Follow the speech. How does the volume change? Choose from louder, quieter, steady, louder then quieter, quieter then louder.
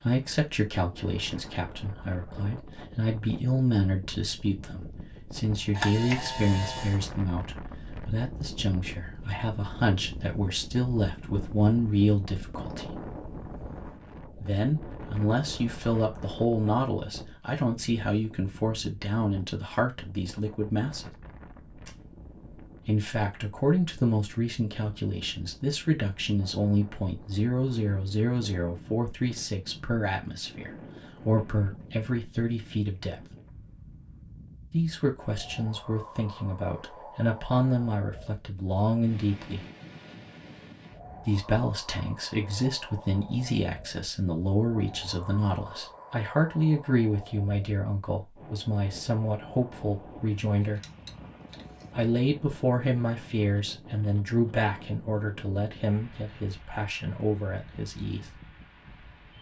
steady.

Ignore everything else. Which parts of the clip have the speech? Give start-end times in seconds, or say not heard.
0.0-13.0, 14.4-21.1, 22.9-33.2, 34.7-39.6, 41.2-50.8, 52.0-58.2.